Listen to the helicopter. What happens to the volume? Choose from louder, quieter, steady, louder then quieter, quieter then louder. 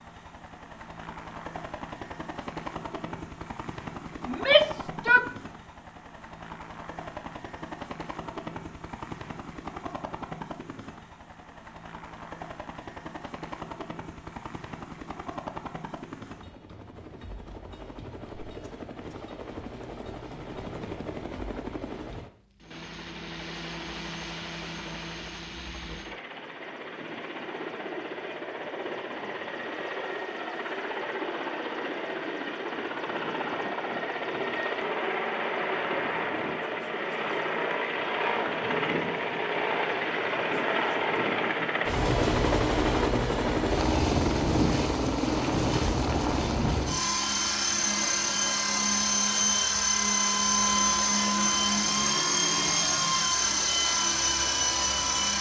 louder.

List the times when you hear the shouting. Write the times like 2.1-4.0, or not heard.
4.2-5.3.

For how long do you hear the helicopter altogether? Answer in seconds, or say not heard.
55 s.